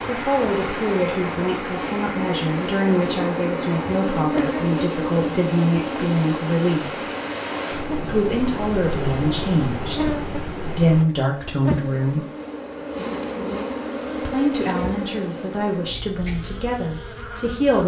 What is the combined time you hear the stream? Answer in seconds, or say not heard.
11 s.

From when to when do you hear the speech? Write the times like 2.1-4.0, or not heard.
0.1-7.0, 8.0-12.2, 14.2-17.8.